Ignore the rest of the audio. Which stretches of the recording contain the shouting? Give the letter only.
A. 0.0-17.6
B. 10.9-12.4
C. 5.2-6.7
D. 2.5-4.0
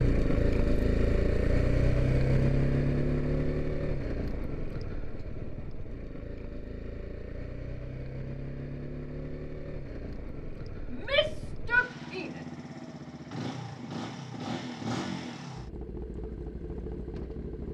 B.